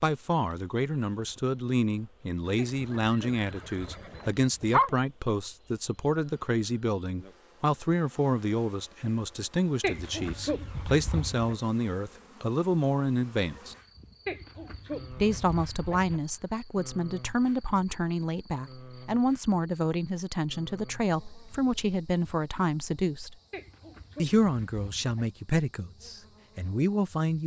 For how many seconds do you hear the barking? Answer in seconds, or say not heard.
8 s.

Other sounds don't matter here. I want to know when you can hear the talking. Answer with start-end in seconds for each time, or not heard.
0.0-13.8, 15.1-23.4, 24.1-27.4.